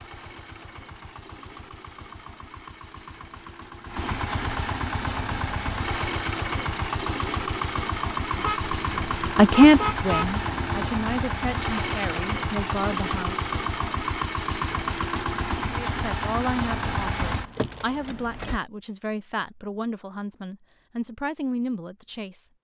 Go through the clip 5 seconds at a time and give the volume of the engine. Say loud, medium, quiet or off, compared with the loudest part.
medium, loud, loud, loud, off.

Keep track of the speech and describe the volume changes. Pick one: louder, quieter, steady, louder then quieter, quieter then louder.
quieter.